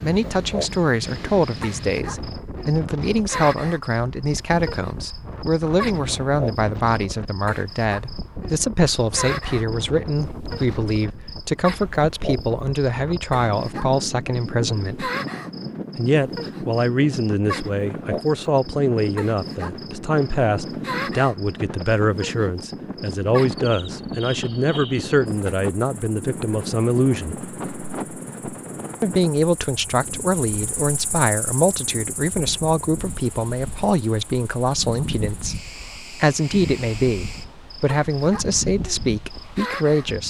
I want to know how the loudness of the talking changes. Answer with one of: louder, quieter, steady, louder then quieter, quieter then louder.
steady.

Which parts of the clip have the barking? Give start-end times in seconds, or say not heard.
not heard.